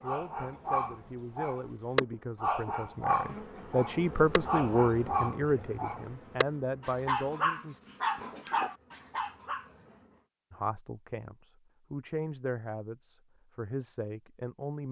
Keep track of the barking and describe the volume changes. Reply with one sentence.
The loudness of the barking stays about the same.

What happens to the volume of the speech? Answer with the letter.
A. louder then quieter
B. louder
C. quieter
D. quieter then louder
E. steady
A.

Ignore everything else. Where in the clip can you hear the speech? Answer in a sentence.
You can hear the speech from 0.0 to 7.8 s and from 10.5 to 14.8 s.